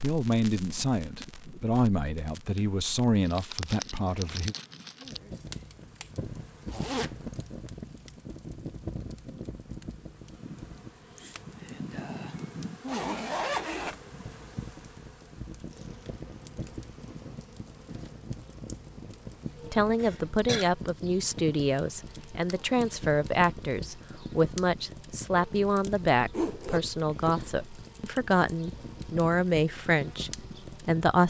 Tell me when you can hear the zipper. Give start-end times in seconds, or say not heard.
6.7-7.2, 12.8-14.1, 26.3-27.6.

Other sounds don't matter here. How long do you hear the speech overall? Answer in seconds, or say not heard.
16 s.